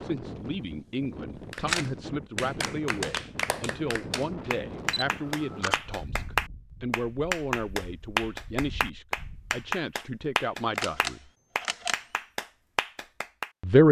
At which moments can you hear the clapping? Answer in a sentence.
You can hear the clapping from 1.5 to 13.5 s.